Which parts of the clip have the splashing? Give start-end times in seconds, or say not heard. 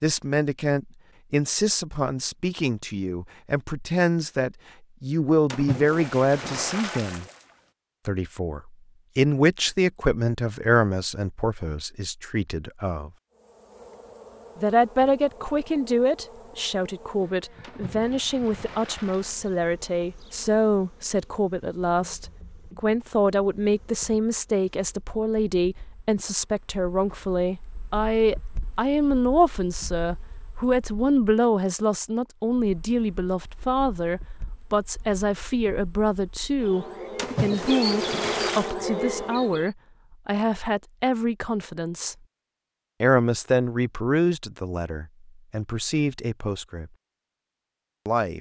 5.5-7.5, 17.6-19.6, 37.1-38.8.